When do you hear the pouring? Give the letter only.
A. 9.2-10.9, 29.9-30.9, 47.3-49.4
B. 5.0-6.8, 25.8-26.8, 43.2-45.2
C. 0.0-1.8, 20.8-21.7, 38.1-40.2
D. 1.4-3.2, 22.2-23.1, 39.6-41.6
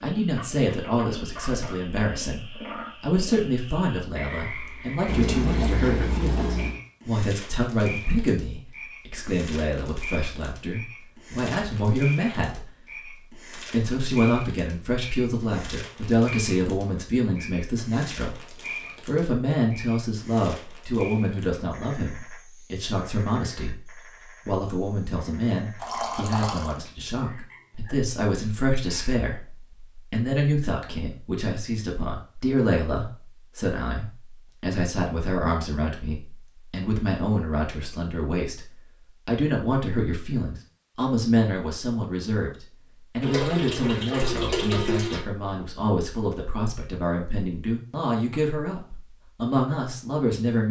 B.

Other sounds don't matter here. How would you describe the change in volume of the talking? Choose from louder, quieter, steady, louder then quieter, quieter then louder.
steady.